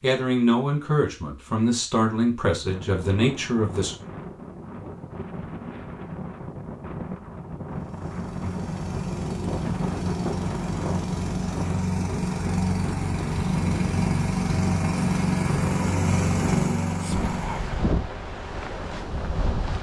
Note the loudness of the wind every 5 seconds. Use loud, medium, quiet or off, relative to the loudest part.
medium, loud, loud, loud.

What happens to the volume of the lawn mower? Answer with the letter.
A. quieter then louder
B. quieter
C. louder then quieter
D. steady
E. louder
E.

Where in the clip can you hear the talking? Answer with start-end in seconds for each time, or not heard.
0.0-4.0.